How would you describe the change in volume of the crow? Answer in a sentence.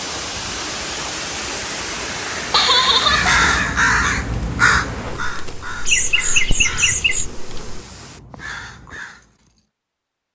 The volume of the crow goes down.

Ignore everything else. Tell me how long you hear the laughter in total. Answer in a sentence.
You can hear the laughter for 2 seconds altogether.